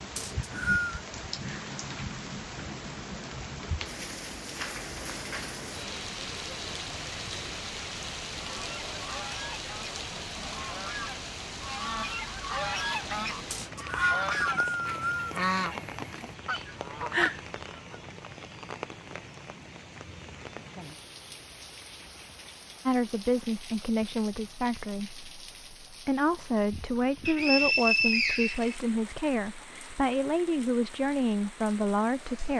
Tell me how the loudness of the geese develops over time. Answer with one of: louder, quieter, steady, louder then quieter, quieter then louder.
louder.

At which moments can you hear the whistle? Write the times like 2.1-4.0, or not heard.
0.1-1.0, 13.5-15.4, 27.2-28.8.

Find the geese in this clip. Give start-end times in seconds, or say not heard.
8.4-18.0.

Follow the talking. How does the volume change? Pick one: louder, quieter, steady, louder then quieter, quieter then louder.
steady.